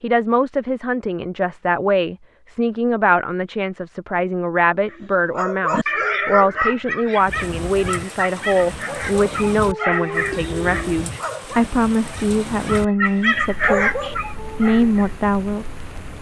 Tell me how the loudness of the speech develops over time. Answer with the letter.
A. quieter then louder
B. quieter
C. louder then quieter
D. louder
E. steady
E.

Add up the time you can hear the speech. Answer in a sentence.
The speech can be heard for 16 seconds in total.